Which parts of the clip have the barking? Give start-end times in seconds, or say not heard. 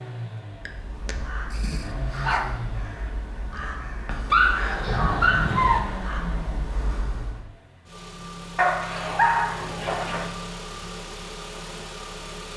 0.7-2.5, 4.3-5.8, 8.6-10.2.